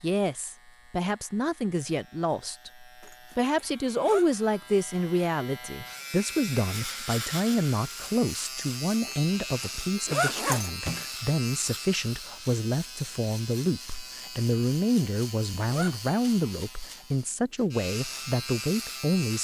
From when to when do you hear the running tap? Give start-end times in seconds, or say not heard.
not heard.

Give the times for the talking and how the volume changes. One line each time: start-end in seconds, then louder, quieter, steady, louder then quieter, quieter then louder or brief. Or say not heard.
0.0-19.3 steady.